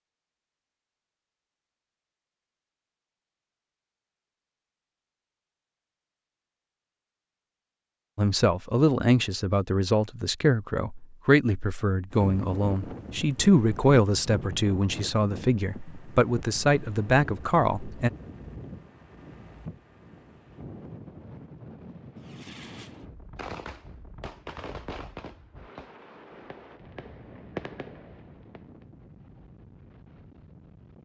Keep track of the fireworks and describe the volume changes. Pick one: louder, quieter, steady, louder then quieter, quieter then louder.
quieter then louder.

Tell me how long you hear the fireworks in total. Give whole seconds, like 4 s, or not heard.
7 s.